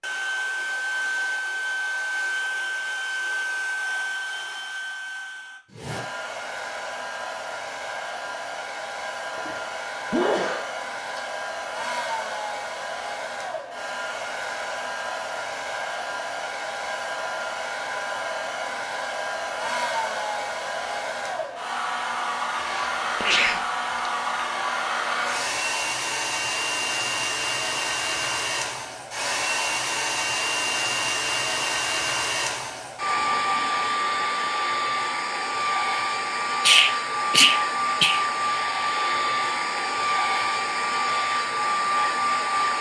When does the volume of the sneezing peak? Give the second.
37 s.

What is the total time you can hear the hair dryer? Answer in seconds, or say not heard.
43 s.